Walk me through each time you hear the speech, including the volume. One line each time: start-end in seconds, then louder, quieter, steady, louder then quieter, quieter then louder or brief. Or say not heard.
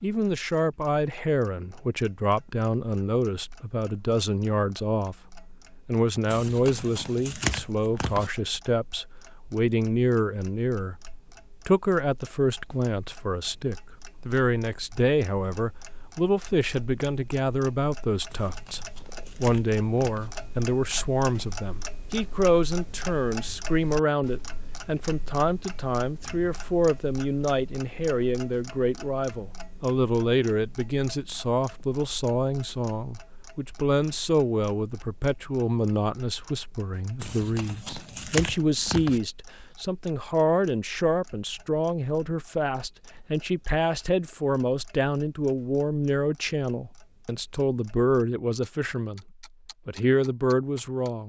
0.0-51.2 steady.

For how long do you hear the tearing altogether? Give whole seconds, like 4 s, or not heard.
6 s.